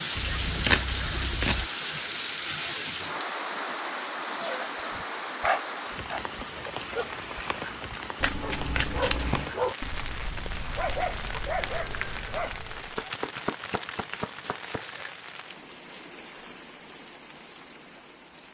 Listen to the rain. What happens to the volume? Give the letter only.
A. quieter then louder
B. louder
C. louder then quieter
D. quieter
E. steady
D.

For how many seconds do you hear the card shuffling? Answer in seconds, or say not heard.
5 s.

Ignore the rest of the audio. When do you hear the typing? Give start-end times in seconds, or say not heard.
not heard.